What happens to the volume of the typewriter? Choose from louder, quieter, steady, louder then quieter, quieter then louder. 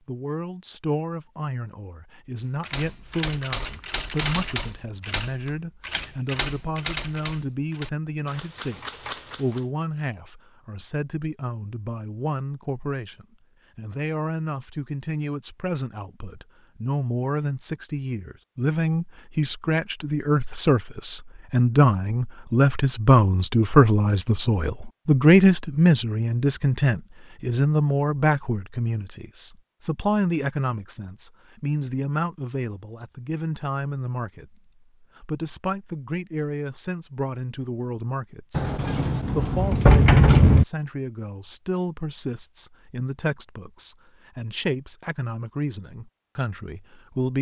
steady.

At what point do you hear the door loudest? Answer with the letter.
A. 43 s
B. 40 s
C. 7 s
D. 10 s
B.